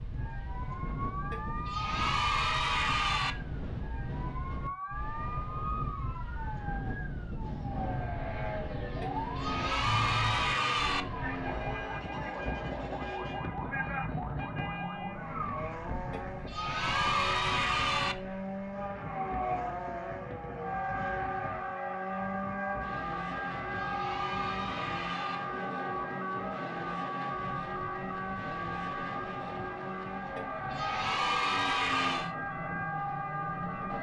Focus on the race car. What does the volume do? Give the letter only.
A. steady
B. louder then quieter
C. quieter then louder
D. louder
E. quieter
A.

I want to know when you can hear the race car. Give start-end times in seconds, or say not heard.
7.4-33.9.